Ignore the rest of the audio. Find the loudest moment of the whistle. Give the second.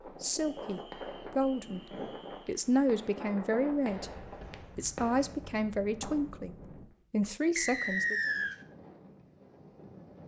8 s.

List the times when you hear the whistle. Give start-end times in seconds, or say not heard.
0.3-2.4, 7.5-8.6.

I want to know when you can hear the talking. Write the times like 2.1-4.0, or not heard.
0.1-8.3.